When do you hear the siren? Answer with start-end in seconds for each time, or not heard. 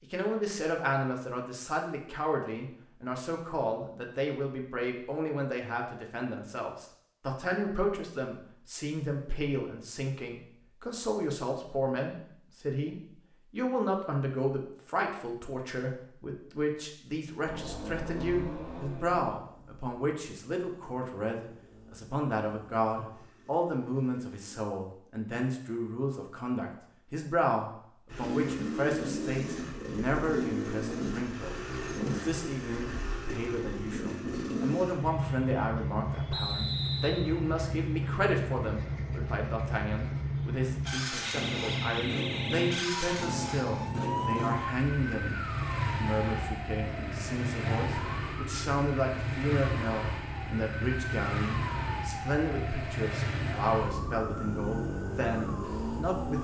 41.2-56.3.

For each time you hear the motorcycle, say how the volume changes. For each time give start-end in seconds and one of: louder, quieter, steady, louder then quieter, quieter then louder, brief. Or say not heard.
17.4-24.6 quieter
28.1-56.3 steady.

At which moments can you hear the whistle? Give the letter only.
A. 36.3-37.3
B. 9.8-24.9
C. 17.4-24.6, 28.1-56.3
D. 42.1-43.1
A.